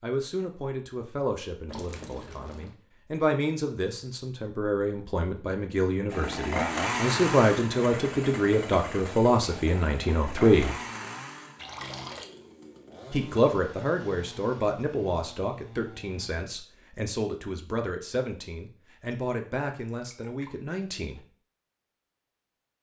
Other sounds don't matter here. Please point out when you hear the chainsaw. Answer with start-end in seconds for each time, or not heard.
6.1-16.4.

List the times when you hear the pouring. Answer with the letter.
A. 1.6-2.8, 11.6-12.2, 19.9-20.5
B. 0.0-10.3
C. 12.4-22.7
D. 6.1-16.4
A.